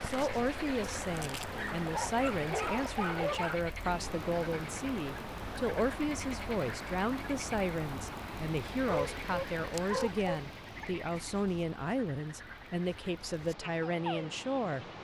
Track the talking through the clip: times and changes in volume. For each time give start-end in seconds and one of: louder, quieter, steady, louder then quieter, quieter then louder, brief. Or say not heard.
0.0-14.9 steady.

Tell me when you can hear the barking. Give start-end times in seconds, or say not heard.
1.6-3.5, 8.8-10.8.